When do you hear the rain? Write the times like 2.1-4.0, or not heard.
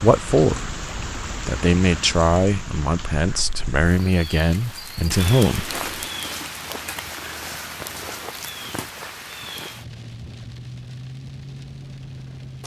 0.0-12.6.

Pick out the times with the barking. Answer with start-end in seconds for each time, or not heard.
not heard.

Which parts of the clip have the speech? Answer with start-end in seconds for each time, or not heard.
0.0-0.8, 1.4-5.8.